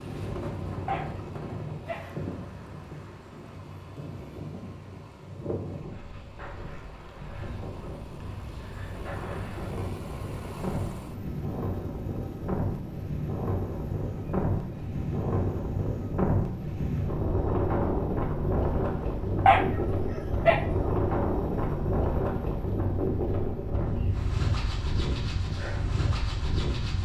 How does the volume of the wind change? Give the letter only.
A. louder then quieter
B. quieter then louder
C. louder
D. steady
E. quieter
C.